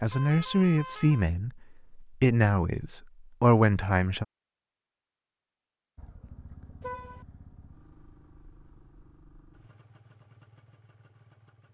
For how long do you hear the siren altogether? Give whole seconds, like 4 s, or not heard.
not heard.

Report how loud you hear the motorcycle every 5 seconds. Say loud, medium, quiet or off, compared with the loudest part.
off, loud, loud.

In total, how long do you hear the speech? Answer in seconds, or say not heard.
4 s.